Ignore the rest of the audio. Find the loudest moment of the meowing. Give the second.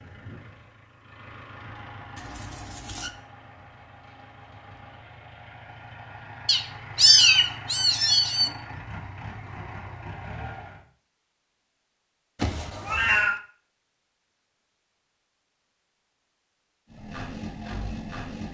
7 s.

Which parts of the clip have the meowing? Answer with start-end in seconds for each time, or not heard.
2.1-3.1, 6.5-8.5, 12.3-13.4.